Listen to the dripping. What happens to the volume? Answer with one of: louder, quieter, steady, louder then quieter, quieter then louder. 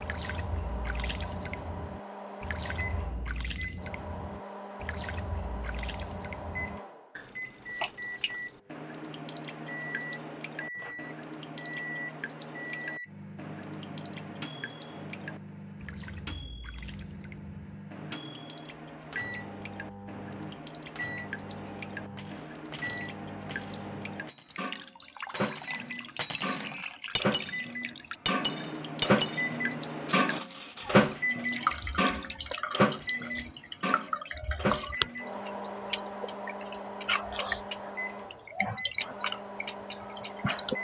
louder.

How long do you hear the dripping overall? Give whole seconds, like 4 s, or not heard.
41 s.